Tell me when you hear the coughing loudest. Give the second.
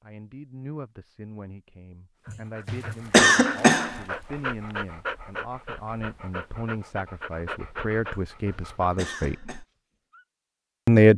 3 s.